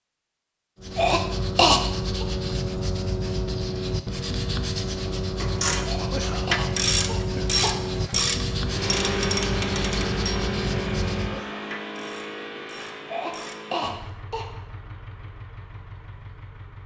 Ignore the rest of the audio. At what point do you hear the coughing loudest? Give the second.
2 s.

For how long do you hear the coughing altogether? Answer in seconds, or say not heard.
5 s.